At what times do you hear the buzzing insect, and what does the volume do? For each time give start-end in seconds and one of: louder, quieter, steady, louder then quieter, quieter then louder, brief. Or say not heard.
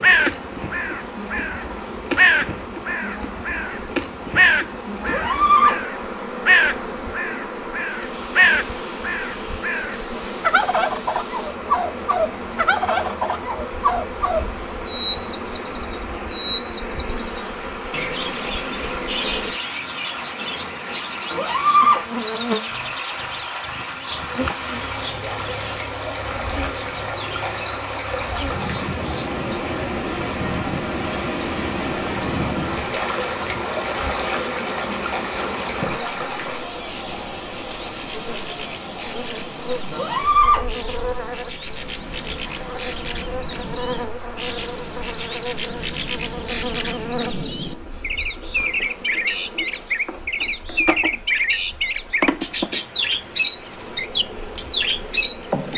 0.0-55.7 steady.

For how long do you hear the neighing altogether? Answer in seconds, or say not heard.
2 s.